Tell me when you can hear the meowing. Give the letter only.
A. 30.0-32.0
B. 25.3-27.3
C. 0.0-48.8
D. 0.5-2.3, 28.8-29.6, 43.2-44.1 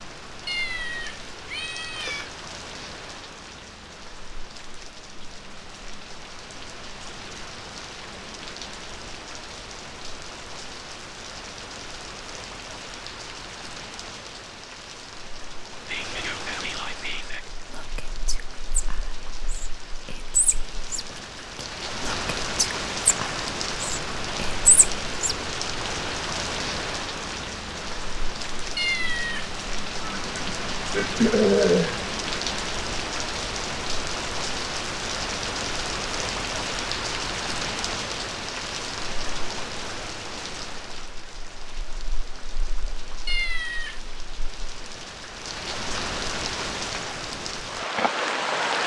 D.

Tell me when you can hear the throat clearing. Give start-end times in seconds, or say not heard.
30.0-32.0.